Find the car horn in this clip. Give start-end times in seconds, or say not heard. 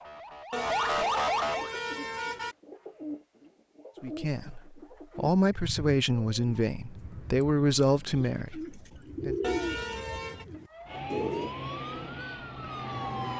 0.5-2.5, 9.4-10.4.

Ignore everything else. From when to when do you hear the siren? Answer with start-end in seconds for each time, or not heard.
0.0-1.7, 10.7-13.3.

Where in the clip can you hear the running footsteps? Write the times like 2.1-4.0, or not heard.
not heard.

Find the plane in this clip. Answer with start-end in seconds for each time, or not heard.
10.8-13.3.